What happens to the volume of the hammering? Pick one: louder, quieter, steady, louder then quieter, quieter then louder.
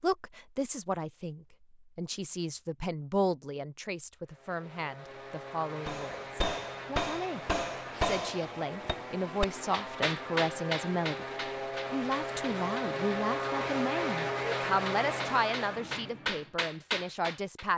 quieter then louder.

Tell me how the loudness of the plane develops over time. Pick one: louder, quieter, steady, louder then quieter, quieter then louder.
louder.